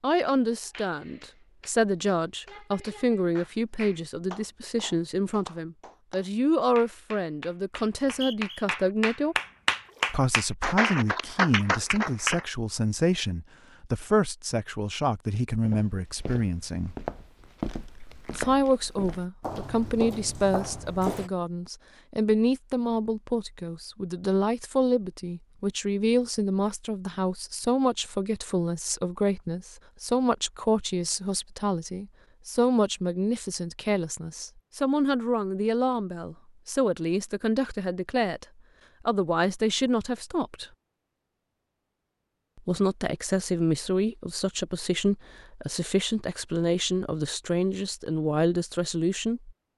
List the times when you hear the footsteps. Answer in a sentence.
The footsteps can be heard from 15.7 to 21.3 s.